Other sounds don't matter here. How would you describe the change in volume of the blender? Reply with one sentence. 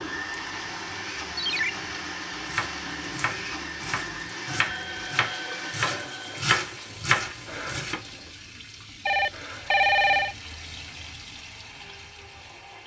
The loudness of the blender goes down.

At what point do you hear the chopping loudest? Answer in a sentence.
The volume of the chopping peaks at 7 seconds.